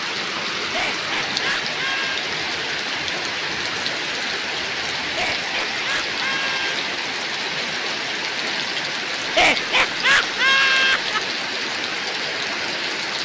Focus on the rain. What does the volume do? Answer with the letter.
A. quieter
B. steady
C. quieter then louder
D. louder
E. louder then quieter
B.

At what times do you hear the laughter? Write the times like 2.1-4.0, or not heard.
0.6-2.2, 5.0-6.8, 9.2-11.2.